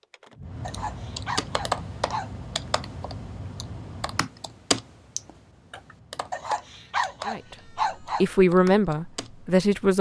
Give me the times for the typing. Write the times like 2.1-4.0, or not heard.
0.7-9.3.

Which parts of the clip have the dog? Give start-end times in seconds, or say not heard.
0.6-2.3, 6.3-8.2.